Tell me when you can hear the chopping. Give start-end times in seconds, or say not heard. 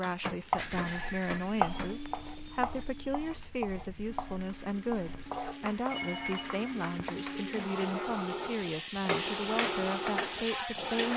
0.5-7.4.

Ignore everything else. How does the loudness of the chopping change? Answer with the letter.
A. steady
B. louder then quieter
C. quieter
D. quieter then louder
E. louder
C.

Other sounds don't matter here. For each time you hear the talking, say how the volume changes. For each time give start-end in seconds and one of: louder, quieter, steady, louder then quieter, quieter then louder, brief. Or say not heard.
0.0-11.1 steady.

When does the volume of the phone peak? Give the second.
6 s.